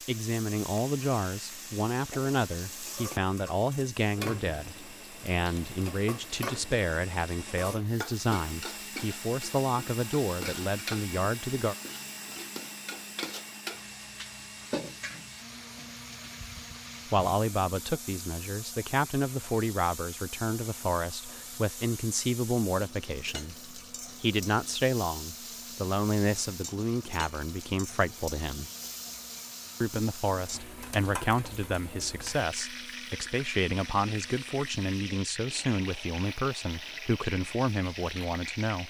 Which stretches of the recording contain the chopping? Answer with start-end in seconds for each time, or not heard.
not heard.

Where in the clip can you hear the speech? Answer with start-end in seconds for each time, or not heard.
0.1-11.8, 17.1-28.7, 29.8-38.8.